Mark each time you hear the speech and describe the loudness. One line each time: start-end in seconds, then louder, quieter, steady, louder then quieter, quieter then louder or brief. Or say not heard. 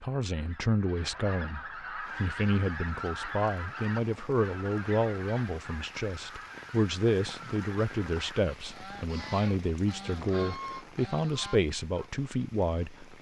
0.0-13.1 steady.